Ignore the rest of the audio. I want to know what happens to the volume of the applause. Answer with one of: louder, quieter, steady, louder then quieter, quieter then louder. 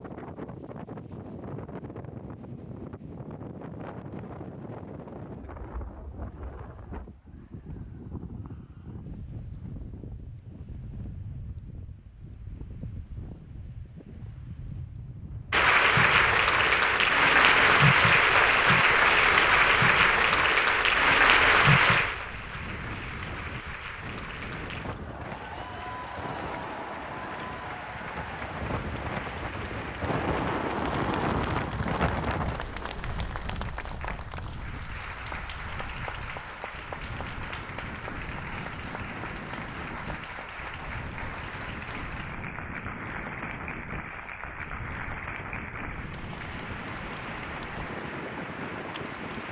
quieter.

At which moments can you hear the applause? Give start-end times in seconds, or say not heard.
15.5-49.4.